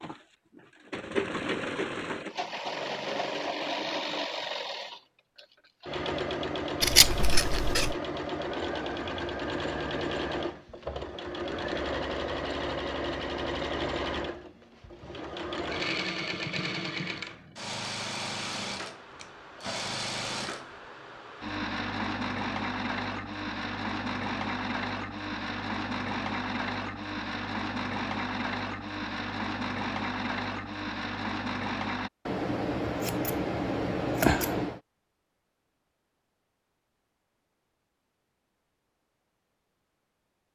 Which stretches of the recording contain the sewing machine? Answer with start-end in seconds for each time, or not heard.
0.0-32.1.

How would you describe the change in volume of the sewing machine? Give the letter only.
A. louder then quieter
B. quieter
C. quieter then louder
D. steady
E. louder
D.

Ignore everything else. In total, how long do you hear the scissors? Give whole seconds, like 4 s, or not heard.
4 s.